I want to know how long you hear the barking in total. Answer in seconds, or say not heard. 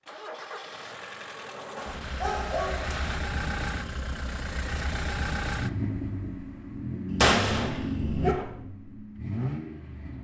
3 s.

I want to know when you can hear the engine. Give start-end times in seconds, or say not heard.
0.0-10.1.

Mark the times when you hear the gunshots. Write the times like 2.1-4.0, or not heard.
7.2-8.4.